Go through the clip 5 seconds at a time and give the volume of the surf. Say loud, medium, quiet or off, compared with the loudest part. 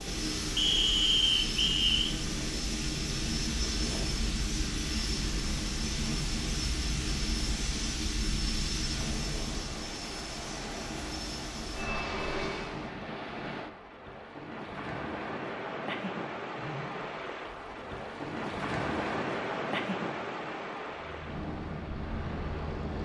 medium, medium, medium, loud, loud.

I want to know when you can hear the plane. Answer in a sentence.
The plane can be heard from 0.0 to 12.9 s and from 20.8 to 23.0 s.